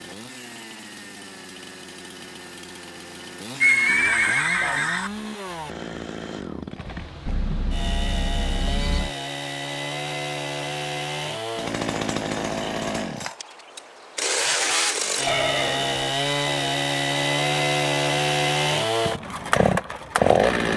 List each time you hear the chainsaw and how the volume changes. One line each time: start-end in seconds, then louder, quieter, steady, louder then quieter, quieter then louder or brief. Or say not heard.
0.0-20.7 louder.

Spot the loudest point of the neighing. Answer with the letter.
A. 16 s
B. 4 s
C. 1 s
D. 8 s
B.